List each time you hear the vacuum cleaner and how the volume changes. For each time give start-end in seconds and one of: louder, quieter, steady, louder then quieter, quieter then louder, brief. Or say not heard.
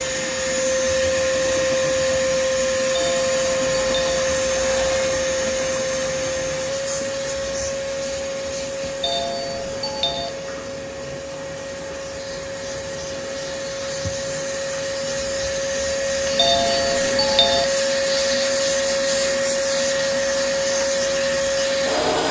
0.0-22.2 quieter then louder.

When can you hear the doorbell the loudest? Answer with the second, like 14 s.
17 s.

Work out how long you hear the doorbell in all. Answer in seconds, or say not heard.
4 s.